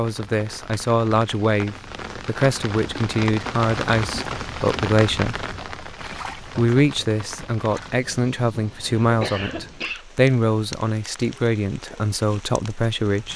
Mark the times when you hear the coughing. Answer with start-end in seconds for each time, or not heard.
8.6-10.1.